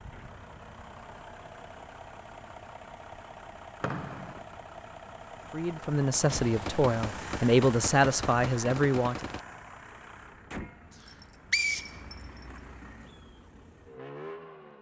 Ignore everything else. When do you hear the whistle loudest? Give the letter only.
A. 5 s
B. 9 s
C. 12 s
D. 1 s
C.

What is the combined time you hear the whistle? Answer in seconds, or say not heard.
2 s.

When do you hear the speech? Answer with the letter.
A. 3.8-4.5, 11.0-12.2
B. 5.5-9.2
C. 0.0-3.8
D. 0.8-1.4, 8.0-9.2
B.